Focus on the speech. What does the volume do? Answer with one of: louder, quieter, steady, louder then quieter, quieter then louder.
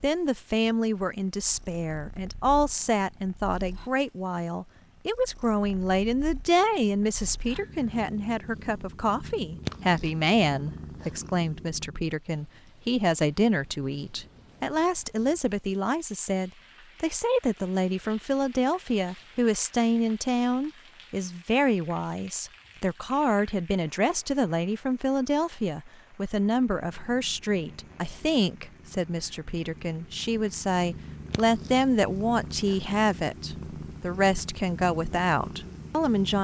steady.